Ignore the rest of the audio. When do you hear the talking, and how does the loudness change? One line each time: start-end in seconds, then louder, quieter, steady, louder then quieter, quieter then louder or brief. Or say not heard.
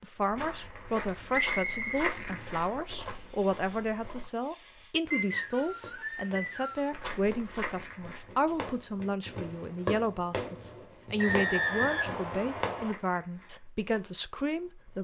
0.0-14.9 steady.